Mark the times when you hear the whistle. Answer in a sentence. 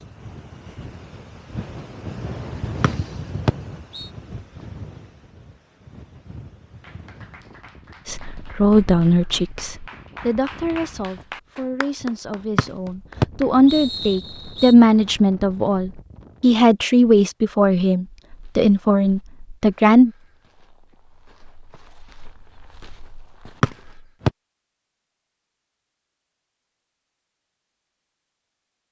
The whistle can be heard from 2.8 to 4.1 s, from 12.6 to 14.8 s and from 23.6 to 24.3 s.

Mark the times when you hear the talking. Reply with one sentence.
The talking can be heard from 8.1 to 20.1 s.